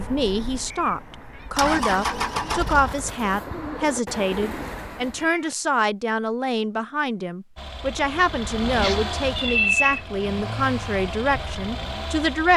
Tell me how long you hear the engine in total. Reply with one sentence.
The engine can be heard for 8 seconds in total.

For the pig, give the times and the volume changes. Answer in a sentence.
You can't hear the pig here.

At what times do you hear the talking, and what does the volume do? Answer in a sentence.
You can hear the talking from 0.0 to 12.5 s, at a steady volume.